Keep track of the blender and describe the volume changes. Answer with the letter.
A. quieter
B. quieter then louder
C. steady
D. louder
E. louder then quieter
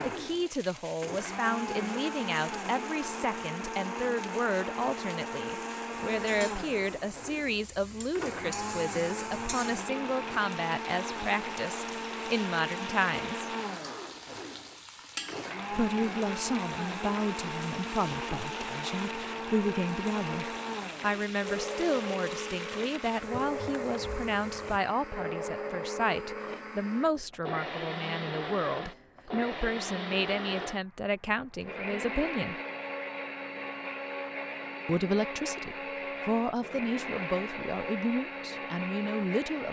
C.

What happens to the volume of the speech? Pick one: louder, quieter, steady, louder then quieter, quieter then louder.
steady.